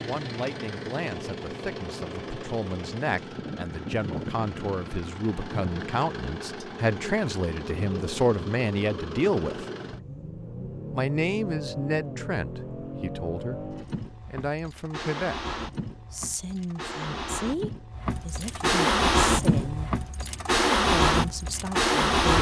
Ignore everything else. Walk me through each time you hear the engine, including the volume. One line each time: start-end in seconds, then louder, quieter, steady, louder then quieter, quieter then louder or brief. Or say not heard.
0.0-22.3 louder.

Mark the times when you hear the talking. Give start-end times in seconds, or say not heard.
0.0-9.7, 10.9-19.9, 20.9-22.3.